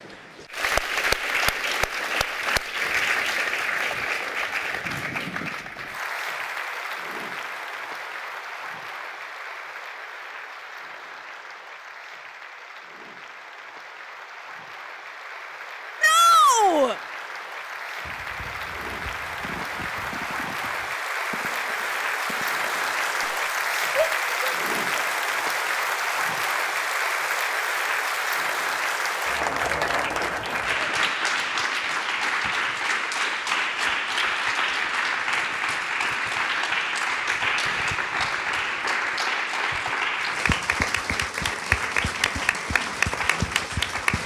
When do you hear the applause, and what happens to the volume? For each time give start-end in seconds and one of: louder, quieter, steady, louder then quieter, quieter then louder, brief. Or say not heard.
0.0-44.2 quieter then louder.